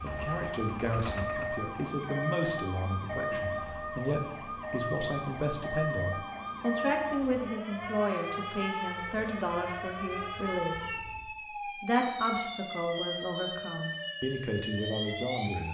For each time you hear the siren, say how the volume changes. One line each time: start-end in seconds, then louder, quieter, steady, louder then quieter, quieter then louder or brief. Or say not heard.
0.0-15.6 steady.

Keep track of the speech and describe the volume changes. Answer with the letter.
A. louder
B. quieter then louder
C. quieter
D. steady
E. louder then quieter
D.